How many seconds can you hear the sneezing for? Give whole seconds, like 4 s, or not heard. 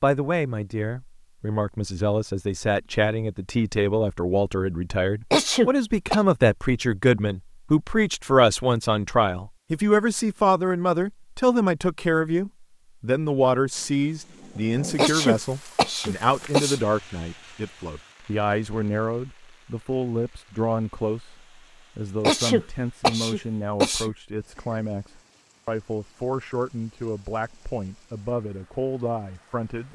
5 s.